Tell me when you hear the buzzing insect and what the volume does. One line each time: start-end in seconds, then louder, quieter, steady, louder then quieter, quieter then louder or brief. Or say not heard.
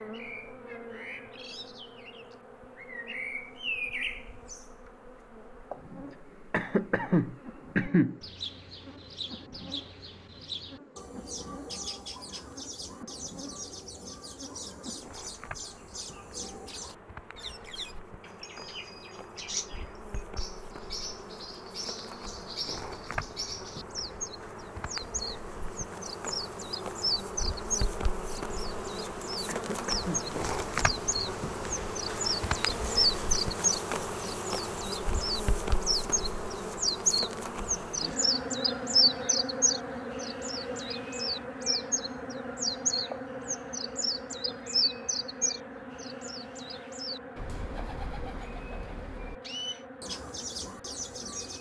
0.0-51.5 louder then quieter.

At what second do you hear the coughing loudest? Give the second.
8 s.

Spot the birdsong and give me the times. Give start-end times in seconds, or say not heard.
0.0-51.5.